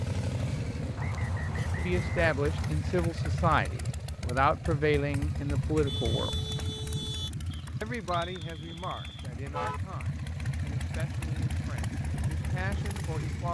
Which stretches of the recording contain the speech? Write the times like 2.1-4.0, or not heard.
1.8-6.3, 7.8-13.4.